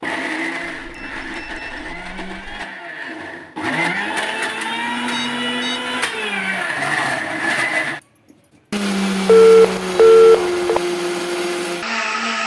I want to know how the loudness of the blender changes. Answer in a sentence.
The volume of the blender goes up.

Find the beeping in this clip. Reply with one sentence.
The beeping can be heard from 0.7 to 2.6 s, from 5.1 to 5.8 s and from 9.2 to 10.8 s.